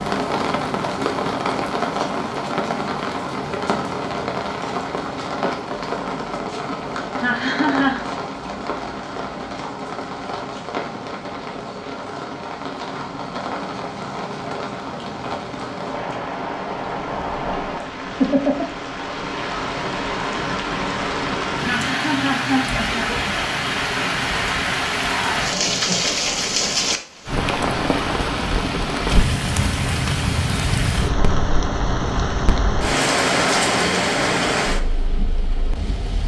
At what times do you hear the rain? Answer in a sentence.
You can hear the rain from 0.0 to 36.2 s.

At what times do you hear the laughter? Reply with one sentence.
The laughter can be heard from 7.2 to 8.1 s and from 21.6 to 23.1 s.